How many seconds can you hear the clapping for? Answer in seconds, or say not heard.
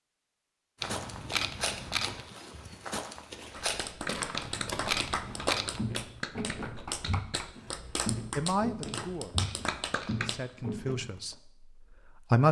7 s.